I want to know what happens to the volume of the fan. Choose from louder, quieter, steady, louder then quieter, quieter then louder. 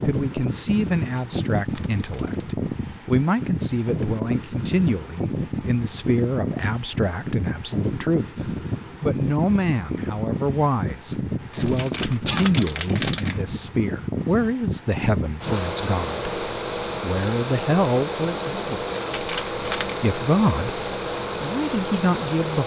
steady.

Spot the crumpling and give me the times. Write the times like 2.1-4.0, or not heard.
0.9-2.5, 11.5-13.4, 18.9-20.1.